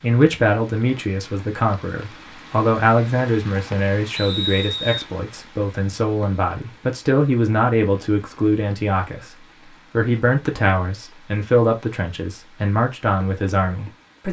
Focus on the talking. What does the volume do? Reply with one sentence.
The loudness of the talking stays about the same.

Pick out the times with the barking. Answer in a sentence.
You can't hear the barking here.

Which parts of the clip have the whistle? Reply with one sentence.
You can hear the whistle from 4.2 to 5.0 s.